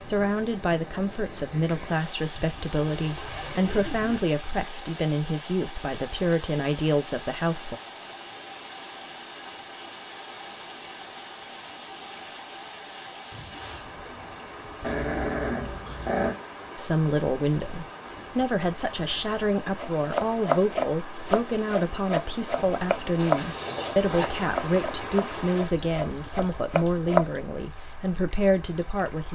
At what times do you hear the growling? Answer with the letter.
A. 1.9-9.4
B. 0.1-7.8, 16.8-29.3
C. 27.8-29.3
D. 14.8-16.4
D.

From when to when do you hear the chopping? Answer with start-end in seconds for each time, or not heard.
19.8-27.2.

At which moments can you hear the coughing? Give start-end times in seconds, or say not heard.
not heard.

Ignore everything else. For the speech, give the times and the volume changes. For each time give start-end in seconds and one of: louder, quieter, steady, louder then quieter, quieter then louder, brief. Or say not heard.
0.1-7.8 steady
16.8-29.3 steady.